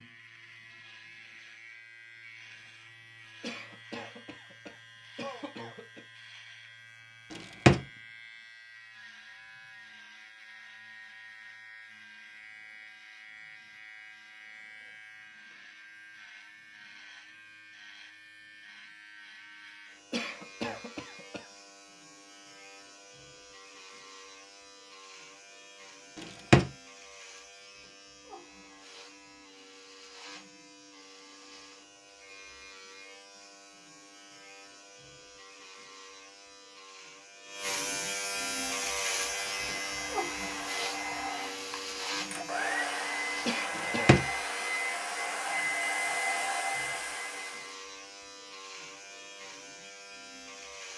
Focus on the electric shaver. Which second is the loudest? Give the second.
39 s.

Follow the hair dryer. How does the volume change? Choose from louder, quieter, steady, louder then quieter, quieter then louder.
louder.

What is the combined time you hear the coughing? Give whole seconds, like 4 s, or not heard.
5 s.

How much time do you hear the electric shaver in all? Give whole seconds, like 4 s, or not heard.
51 s.